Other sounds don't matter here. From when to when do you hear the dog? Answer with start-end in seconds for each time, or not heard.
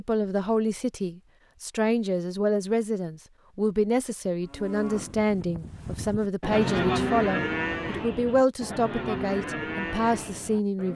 not heard.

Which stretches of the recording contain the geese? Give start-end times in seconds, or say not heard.
not heard.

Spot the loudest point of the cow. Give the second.
7 s.